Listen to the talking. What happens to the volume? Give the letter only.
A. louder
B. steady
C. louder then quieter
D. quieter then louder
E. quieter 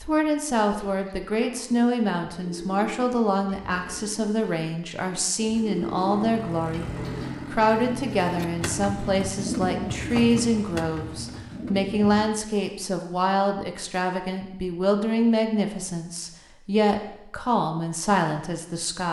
B.